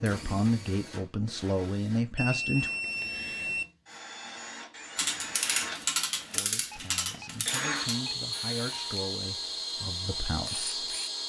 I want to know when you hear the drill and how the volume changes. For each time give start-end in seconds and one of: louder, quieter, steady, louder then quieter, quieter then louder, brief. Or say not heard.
0.0-11.2 louder.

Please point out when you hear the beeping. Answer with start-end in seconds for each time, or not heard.
2.1-3.6, 6.6-8.9.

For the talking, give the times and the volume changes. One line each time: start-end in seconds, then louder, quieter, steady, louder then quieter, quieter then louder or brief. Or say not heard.
0.0-2.7 brief
6.3-10.9 louder.